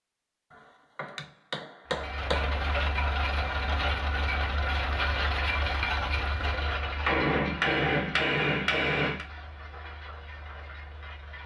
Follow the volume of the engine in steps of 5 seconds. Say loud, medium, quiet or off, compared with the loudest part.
loud, loud, quiet.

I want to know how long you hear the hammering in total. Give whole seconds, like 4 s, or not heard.
4 s.